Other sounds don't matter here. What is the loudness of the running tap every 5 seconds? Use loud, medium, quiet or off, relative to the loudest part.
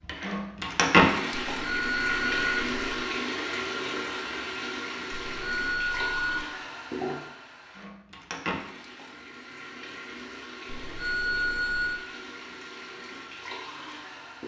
loud, medium, quiet.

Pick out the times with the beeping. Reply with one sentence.
You can hear the beeping from 1.5 to 3.0 s, from 5.1 to 6.5 s and from 10.7 to 12.0 s.